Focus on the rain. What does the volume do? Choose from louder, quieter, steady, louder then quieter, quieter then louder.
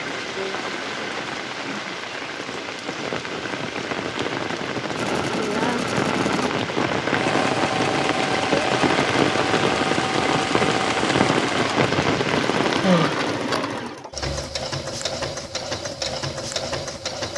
louder.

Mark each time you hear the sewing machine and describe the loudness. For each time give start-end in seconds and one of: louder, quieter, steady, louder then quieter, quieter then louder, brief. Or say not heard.
4.9-17.3 steady.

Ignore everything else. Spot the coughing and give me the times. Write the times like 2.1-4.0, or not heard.
12.8-13.7.